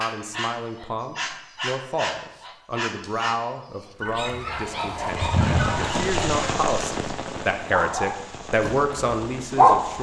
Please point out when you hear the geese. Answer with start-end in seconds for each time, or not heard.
4.0-6.5.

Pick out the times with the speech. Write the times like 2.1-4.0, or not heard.
0.0-9.9.